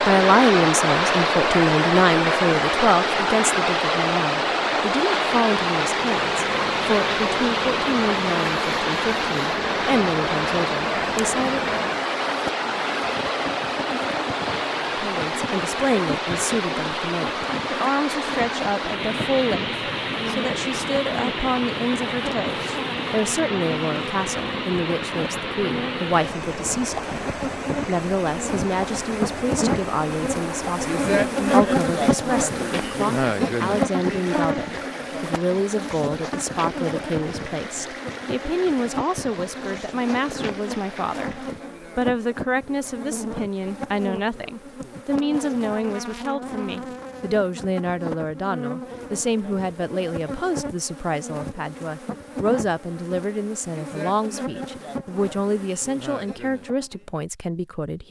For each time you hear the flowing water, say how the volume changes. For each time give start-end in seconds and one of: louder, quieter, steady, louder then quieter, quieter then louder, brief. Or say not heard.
0.0-41.8 quieter.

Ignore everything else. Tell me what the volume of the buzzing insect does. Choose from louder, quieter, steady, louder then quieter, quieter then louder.
louder then quieter.